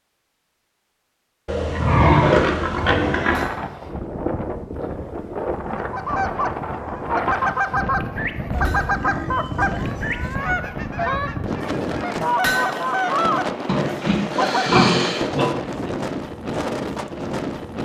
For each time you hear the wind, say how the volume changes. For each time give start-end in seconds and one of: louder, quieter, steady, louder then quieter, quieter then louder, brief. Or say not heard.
2.7-17.8 steady.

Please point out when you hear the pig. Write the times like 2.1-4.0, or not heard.
1.4-3.5, 8.5-10.3, 13.7-15.6.